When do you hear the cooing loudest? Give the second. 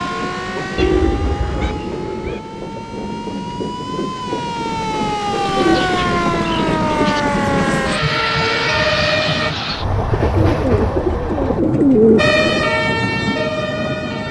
12 s.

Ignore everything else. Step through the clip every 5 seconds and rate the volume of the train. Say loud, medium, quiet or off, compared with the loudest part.
medium, loud, loud.